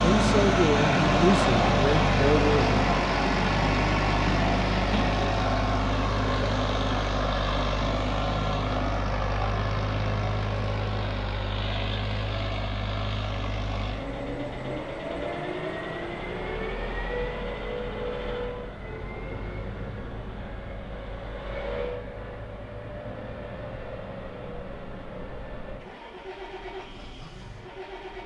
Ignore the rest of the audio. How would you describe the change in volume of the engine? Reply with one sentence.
The loudness of the engine goes down.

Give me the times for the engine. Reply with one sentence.
The engine can be heard from 0.0 to 28.2 s.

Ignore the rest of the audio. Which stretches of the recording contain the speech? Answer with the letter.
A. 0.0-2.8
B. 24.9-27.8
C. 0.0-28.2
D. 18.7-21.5
A.